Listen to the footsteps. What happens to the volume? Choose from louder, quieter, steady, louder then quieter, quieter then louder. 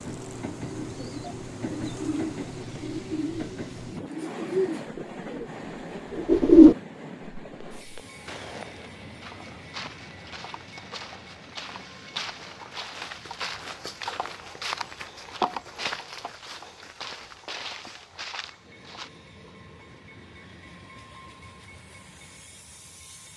louder then quieter.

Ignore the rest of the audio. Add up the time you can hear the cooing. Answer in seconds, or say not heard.
6 s.